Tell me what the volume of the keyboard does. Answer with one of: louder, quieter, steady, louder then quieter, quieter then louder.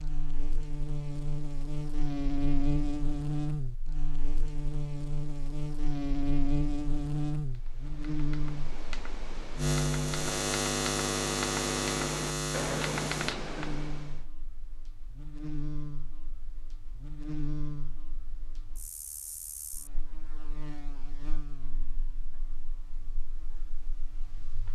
louder.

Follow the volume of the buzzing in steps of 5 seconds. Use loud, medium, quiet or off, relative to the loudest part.
loud, loud, loud, medium, quiet.